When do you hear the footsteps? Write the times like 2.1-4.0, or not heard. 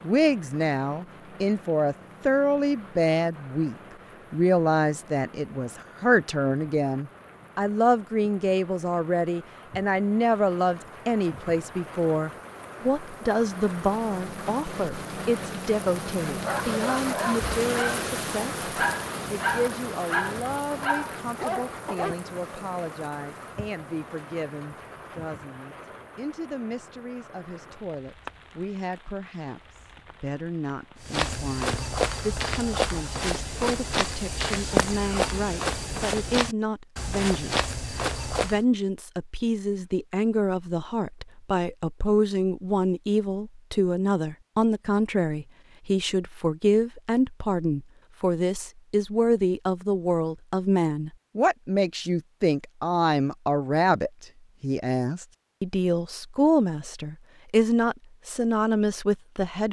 31.0-38.6.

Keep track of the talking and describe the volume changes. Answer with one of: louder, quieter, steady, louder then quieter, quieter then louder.
quieter then louder.